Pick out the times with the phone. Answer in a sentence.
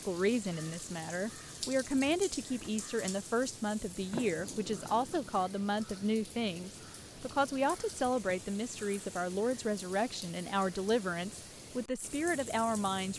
The phone can't be heard in this clip.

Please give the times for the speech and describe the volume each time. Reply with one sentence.
The speech can be heard from 0.1 to 13.1 s, at a steady volume.